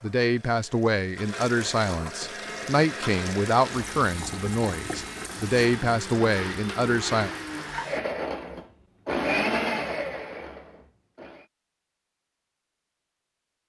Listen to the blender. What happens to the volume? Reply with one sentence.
The volume of the blender goes up.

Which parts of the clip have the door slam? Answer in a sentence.
The door slam can't be heard in this clip.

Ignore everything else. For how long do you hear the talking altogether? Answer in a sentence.
You can hear the talking for 7 seconds altogether.